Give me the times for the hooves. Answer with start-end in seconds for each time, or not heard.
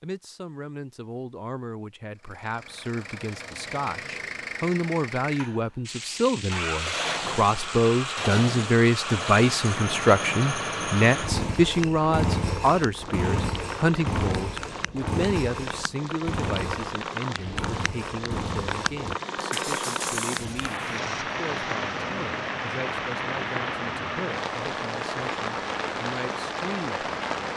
not heard.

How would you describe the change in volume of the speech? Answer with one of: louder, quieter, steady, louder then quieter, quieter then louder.
louder then quieter.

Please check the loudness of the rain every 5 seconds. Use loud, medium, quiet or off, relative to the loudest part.
off, medium, medium, loud, loud, loud.